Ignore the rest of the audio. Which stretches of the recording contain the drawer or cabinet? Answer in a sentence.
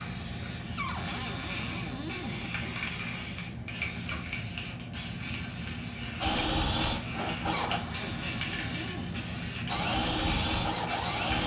The drawer or cabinet can be heard from 0.8 to 2.5 s and from 7.5 to 9.2 s.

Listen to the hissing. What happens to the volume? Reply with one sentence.
The loudness of the hissing stays about the same.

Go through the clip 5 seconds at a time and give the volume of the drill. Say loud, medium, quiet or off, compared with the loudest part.
off, loud, loud.